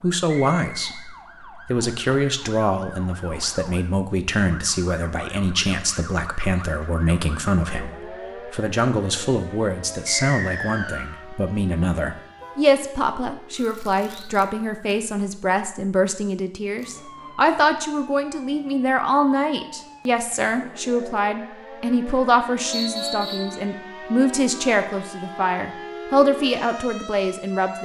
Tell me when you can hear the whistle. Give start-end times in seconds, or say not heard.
0.2-0.9, 10.1-11.2, 22.7-23.6.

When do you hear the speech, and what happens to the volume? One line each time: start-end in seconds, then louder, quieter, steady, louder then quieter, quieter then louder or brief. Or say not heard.
0.0-27.7 steady.